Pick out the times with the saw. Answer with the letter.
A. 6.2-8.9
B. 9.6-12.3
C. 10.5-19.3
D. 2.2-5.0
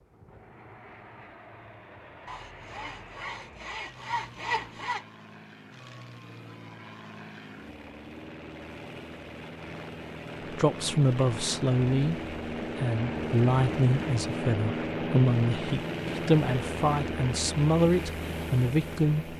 D.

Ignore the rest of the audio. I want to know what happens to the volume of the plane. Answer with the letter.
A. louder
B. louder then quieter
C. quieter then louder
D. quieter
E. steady
A.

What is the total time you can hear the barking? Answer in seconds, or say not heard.
not heard.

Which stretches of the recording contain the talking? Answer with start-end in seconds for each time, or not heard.
10.5-19.3.